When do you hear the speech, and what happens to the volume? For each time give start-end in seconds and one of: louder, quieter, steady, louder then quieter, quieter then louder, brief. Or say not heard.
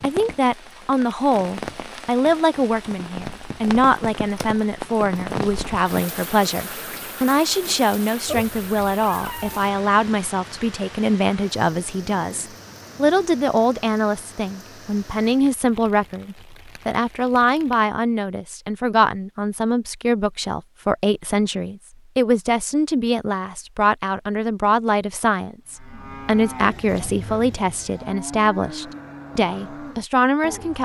0.0-30.7 steady.